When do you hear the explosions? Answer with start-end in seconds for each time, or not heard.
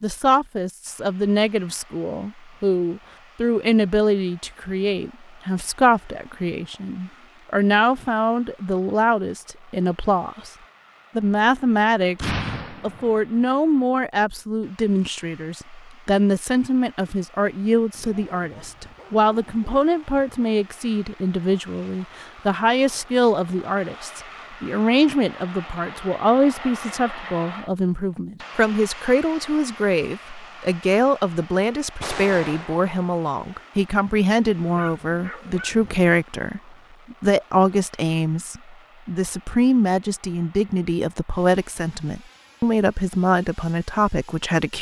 12.2-13.2, 32.0-33.0.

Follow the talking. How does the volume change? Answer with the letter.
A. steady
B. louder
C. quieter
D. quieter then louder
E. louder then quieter
A.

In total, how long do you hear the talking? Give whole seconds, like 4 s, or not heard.
44 s.